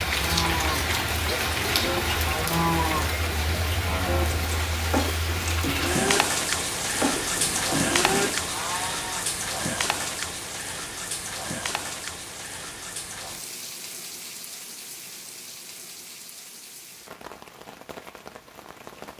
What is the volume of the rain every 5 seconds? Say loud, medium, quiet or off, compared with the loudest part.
loud, loud, medium, quiet.